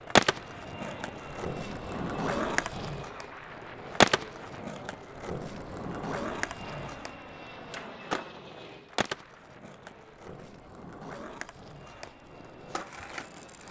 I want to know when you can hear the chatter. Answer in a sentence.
The chatter can't be heard in this clip.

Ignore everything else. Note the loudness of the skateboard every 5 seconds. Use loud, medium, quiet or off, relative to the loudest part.
loud, medium, quiet.